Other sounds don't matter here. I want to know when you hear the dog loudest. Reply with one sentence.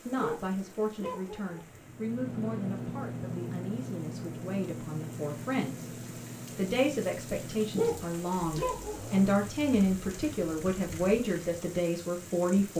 The loudest moment of the dog is at 8 seconds.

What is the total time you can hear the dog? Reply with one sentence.
The dog can be heard for 3 seconds in total.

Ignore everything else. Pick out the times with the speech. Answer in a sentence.
The speech can be heard from 0.1 to 5.8 s and from 6.5 to 12.7 s.